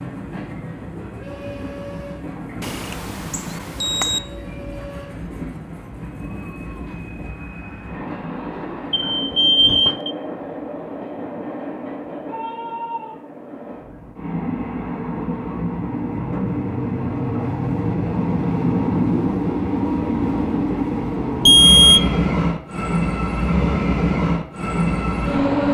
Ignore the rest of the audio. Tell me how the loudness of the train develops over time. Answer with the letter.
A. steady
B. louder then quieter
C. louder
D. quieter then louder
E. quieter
C.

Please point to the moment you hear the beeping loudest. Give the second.
22 s.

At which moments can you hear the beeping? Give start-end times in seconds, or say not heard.
2.6-4.2, 8.9-10.1, 21.4-22.1.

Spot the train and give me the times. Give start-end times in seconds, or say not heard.
0.0-25.6.